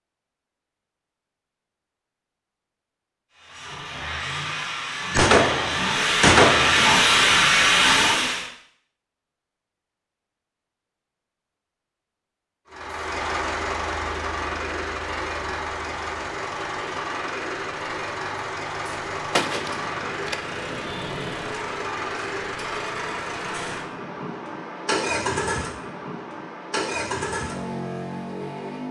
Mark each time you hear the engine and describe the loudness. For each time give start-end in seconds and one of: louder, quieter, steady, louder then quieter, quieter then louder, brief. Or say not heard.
3.5-8.4 louder
12.7-28.8 steady.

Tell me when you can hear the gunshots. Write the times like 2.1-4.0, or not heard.
5.1-6.9, 19.4-20.4.